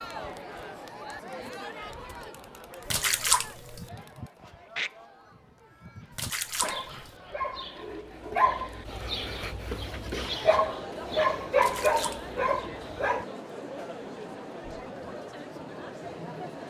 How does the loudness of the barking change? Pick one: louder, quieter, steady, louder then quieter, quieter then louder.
louder.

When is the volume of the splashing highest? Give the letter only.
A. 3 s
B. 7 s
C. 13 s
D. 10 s
A.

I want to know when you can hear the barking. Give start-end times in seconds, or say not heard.
3.3-13.2.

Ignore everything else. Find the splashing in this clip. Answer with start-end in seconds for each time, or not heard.
2.9-3.8, 6.1-7.1, 11.6-12.2.